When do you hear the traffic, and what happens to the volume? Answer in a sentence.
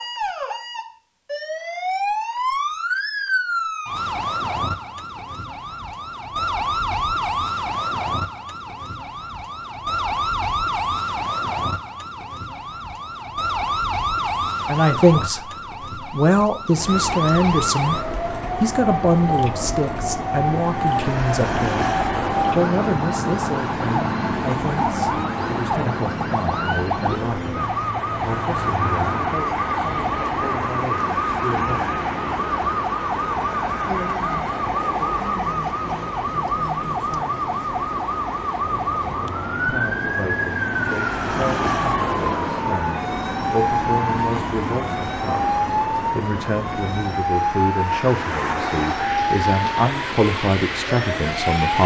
The traffic can be heard from 16.7 to 51.8 s, at a steady volume.